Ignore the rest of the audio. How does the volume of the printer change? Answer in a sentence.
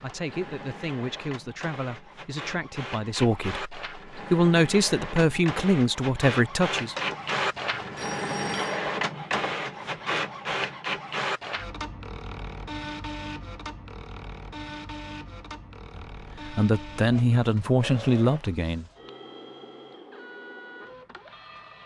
The loudness of the printer goes up, then down.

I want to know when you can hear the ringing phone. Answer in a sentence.
You can hear the ringing phone from 7.0 to 8.8 s.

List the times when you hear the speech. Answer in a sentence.
The speech can be heard from 0.0 to 7.0 s and from 15.9 to 18.9 s.